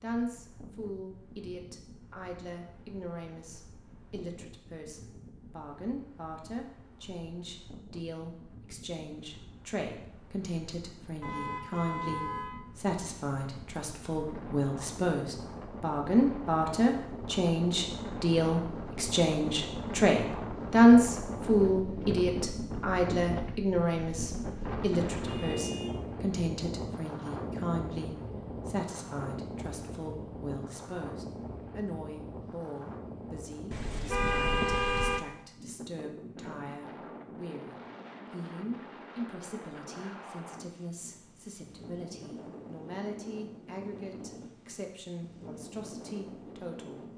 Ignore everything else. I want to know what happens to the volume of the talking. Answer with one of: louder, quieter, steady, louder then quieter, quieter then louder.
louder then quieter.